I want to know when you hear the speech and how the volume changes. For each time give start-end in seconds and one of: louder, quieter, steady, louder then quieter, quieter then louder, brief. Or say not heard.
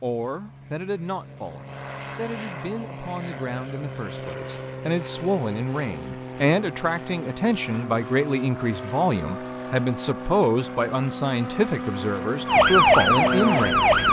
0.0-13.9 louder.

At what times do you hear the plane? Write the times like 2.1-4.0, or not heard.
0.0-14.0.